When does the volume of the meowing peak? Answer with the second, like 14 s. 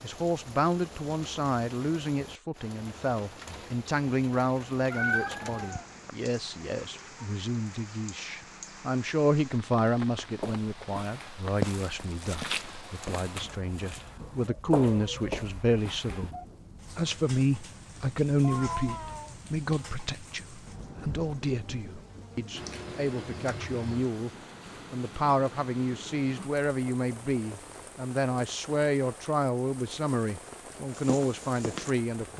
5 s.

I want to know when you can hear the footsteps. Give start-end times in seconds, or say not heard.
10.4-16.3, 30.9-32.3.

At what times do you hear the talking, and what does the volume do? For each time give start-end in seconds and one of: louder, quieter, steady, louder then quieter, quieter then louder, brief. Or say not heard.
0.0-16.4 steady
16.9-24.3 quieter
24.9-32.3 steady.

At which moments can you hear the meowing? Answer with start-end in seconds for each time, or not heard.
4.9-6.1, 18.4-19.4, 22.6-24.1.